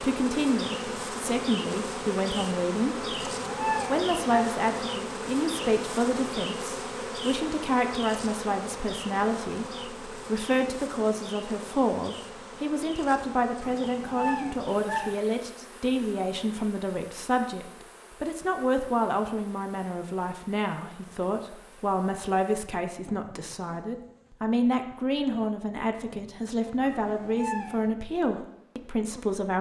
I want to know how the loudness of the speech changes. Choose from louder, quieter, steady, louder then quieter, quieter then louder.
steady.